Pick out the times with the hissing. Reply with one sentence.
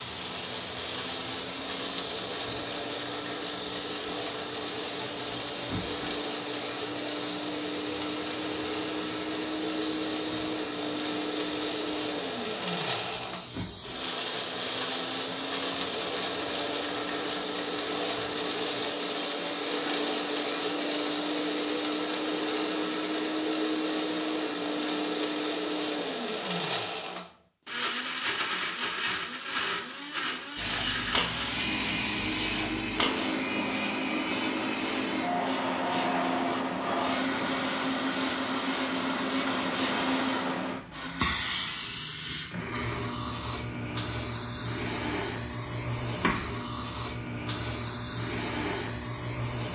The hissing can be heard from 0.0 to 18.9 s and from 30.6 to 49.7 s.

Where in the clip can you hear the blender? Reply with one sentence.
You can hear the blender from 0.0 to 41.4 s.